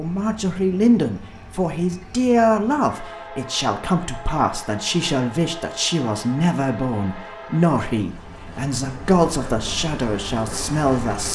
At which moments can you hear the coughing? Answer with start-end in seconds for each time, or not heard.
not heard.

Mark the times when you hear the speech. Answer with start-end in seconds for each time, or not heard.
0.0-11.3.